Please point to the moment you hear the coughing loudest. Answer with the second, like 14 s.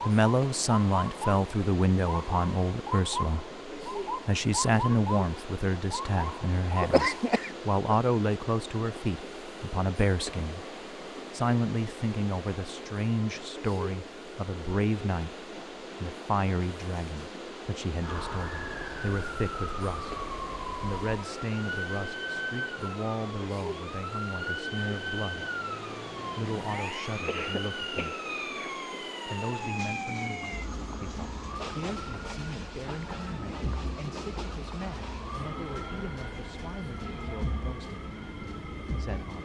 7 s.